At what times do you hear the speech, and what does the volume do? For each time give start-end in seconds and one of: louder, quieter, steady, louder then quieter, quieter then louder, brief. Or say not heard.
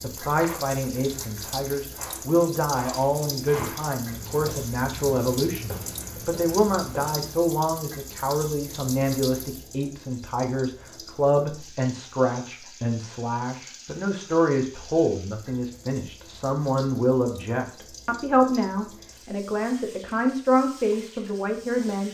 0.0-22.0 steady.